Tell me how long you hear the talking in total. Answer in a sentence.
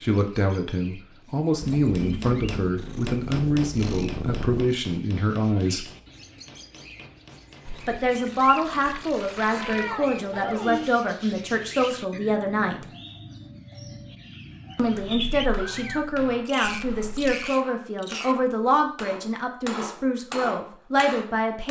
You can hear the talking for 18 seconds altogether.